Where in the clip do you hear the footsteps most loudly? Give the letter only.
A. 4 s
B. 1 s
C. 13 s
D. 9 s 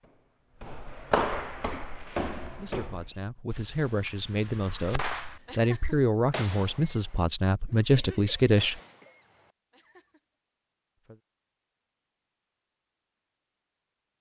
B.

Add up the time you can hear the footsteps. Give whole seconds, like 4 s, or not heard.
3 s.